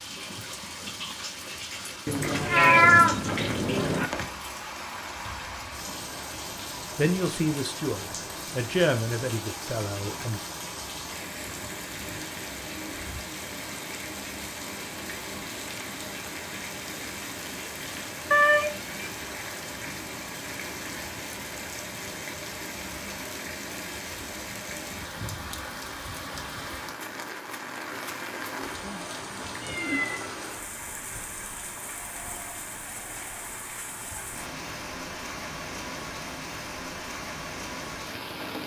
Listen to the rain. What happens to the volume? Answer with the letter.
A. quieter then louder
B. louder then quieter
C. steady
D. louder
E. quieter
C.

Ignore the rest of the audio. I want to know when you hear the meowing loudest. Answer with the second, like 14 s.
3 s.